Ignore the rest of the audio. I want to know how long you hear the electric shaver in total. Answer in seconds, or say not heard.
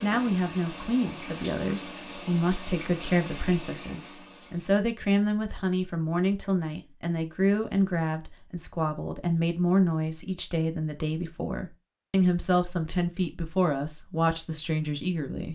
not heard.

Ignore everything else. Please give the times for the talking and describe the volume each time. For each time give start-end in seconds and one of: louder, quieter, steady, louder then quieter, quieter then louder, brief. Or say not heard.
0.0-15.4 steady.